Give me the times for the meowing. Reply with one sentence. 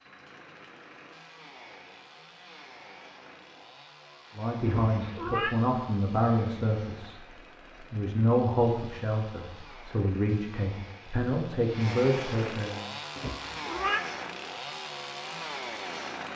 The meowing can be heard from 4.8 to 5.5 s and from 13.2 to 14.1 s.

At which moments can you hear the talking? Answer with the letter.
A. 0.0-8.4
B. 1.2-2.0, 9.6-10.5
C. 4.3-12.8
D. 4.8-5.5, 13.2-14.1
C.